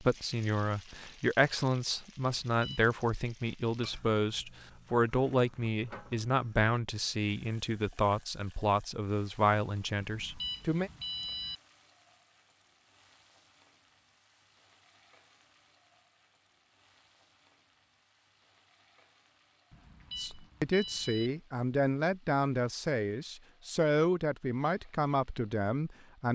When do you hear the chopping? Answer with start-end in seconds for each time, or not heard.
not heard.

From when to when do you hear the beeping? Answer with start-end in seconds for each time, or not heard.
2.2-3.0, 10.0-11.6, 19.7-21.3.